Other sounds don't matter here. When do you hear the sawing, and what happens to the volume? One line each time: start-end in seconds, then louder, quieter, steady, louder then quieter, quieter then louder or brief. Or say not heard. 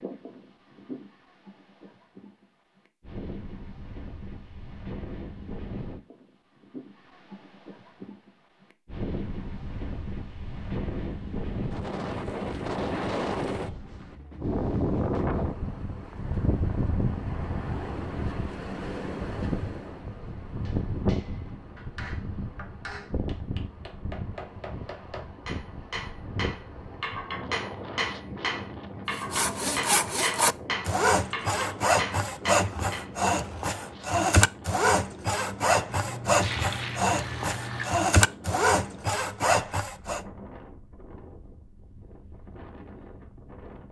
29.1-40.2 steady.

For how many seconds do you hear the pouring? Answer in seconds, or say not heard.
2 s.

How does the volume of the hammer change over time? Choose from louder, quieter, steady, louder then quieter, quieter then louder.
louder.